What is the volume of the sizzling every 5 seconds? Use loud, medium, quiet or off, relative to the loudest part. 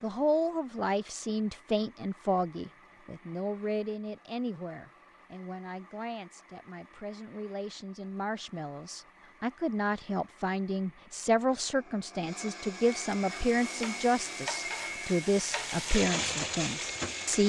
off, off, medium, loud.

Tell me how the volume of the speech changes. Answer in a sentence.
The loudness of the speech goes down, then up.